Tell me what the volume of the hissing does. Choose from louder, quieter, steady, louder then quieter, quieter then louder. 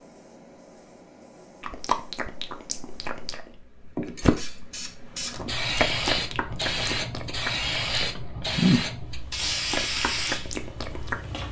louder.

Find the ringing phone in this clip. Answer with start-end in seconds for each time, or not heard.
not heard.